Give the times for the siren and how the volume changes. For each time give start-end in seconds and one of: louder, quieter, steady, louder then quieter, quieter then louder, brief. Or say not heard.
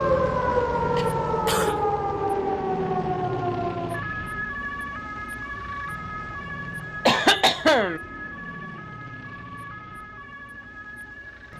0.0-11.5 quieter.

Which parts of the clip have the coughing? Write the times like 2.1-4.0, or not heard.
0.9-1.9, 7.0-8.0.